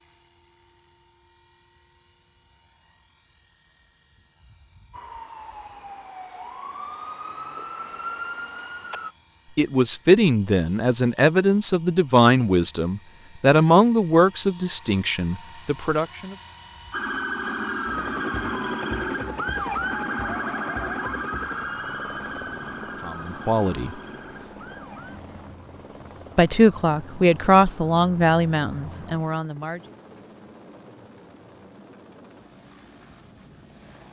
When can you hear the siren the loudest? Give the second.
20 s.